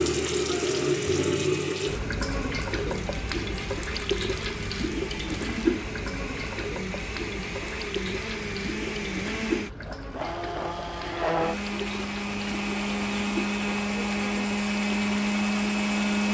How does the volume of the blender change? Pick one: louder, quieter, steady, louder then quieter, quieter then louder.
louder.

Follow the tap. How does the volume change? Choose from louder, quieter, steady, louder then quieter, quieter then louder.
quieter.